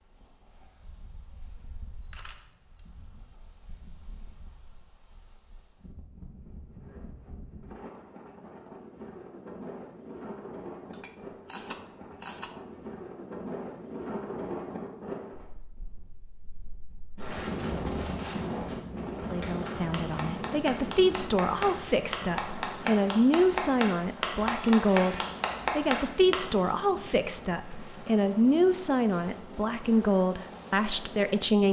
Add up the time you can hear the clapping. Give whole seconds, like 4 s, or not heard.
7 s.